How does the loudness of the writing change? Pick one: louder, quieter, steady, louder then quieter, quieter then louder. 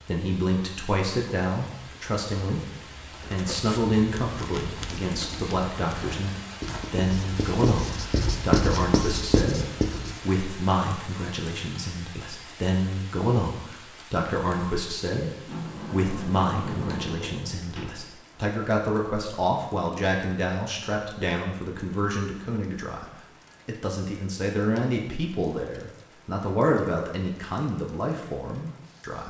louder.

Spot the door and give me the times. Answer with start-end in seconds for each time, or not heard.
15.4-17.9.